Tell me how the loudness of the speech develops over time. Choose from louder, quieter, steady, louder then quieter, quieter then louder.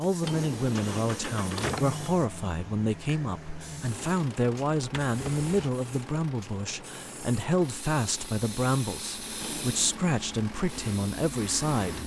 steady.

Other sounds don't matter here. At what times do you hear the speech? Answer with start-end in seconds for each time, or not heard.
0.0-12.0.